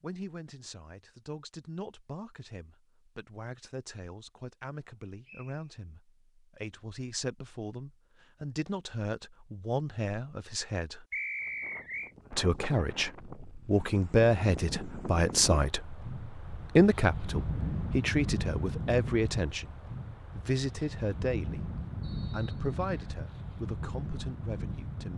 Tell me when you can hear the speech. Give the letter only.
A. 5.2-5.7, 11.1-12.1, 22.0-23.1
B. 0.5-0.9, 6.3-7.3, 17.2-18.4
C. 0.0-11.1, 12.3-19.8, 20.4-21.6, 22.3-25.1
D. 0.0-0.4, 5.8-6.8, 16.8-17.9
C.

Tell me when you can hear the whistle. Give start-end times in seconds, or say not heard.
5.2-5.7, 11.1-12.1, 22.0-23.1.